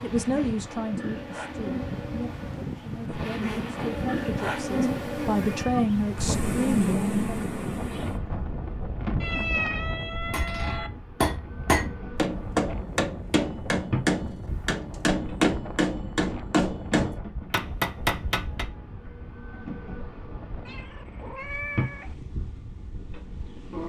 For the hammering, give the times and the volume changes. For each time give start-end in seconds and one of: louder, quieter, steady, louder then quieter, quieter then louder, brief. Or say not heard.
10.3-18.6 steady.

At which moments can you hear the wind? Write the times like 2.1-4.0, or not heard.
0.0-23.8.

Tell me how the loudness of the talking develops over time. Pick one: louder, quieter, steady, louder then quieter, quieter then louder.
quieter then louder.